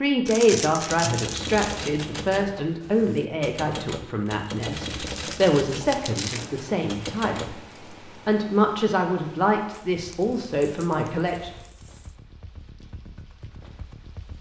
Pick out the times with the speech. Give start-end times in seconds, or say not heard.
0.0-11.5.